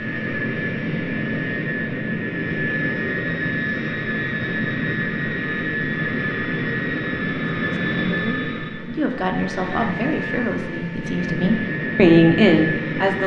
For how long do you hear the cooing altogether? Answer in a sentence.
You can't hear the cooing here.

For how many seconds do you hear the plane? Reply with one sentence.
The plane can be heard for 13 seconds in total.